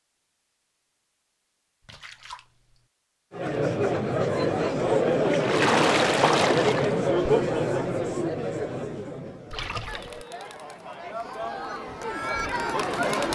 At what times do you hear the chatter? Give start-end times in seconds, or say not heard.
3.3-13.3.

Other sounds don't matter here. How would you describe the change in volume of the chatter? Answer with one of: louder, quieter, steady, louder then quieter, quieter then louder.
quieter then louder.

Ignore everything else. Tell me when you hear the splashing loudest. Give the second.
6 s.